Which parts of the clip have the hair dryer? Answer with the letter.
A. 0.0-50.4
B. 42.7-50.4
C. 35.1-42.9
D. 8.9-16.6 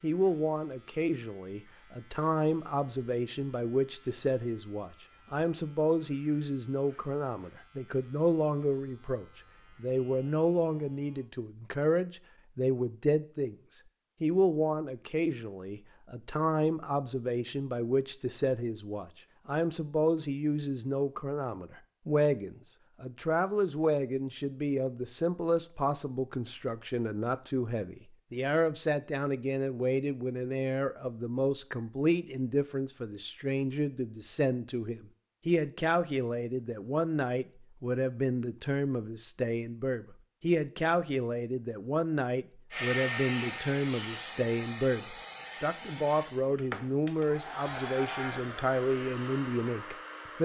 B.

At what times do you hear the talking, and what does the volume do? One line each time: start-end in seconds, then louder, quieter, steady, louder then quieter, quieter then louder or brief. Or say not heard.
0.0-50.4 steady.